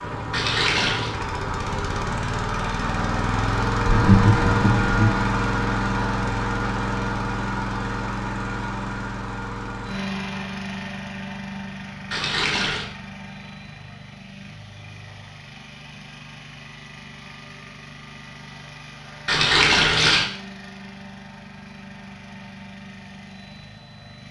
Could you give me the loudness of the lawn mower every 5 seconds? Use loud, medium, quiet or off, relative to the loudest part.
loud, loud, medium, quiet, quiet.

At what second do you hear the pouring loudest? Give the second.
20 s.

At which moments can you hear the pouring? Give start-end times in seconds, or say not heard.
0.3-1.1, 12.1-12.8, 19.2-20.2.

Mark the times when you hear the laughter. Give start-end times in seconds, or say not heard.
3.8-5.2.